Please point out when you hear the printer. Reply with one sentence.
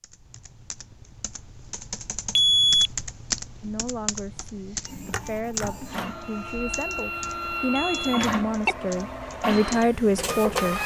The printer can be heard from 4.8 to 10.8 s.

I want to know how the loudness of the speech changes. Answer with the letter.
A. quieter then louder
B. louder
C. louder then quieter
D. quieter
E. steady
B.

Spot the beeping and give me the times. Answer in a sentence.
The beeping can be heard from 2.4 to 2.9 s and from 7.8 to 8.8 s.